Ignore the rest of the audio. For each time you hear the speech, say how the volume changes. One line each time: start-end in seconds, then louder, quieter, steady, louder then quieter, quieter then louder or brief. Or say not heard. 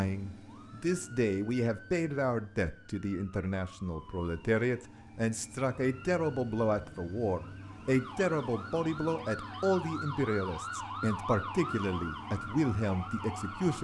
0.0-13.7 steady.